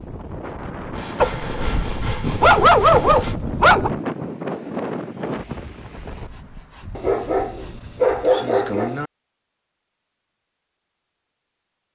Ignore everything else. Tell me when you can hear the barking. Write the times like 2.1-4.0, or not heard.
1.2-3.9, 7.0-9.1.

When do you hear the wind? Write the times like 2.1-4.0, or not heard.
0.0-6.3.